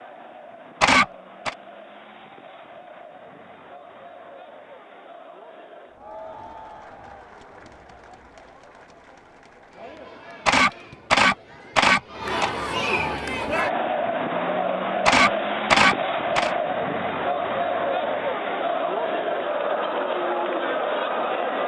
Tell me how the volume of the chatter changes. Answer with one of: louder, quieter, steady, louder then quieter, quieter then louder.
louder.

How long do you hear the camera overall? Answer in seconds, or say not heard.
4 s.